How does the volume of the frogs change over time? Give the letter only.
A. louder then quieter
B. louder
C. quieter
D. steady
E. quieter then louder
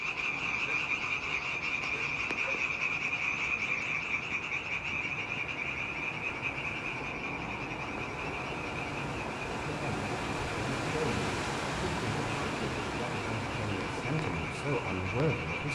C.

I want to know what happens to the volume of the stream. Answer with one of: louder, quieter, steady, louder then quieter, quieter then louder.
louder.